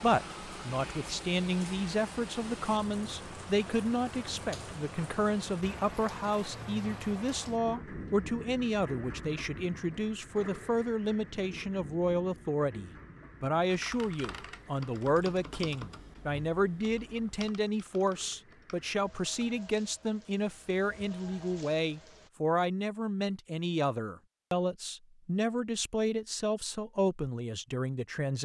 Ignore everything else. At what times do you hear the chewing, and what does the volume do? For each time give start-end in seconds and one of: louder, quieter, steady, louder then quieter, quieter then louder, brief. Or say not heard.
not heard.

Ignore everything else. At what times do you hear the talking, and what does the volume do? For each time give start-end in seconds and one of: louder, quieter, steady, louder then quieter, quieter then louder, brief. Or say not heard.
0.0-28.4 steady.